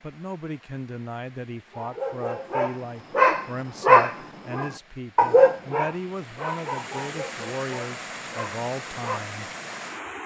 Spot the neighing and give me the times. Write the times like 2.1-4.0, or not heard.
not heard.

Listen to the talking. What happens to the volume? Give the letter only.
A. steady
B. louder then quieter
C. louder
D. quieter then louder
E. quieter
A.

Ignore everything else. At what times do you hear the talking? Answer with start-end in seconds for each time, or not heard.
0.0-9.6.